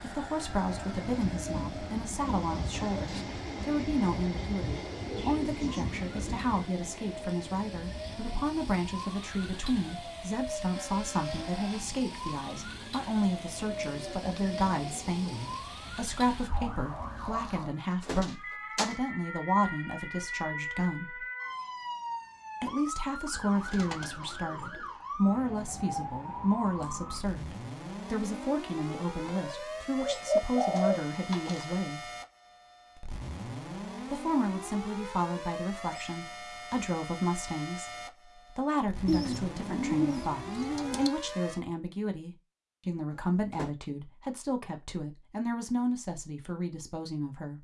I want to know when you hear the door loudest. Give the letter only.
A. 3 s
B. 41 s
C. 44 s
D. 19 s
D.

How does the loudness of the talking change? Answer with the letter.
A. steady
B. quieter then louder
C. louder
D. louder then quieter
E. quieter
A.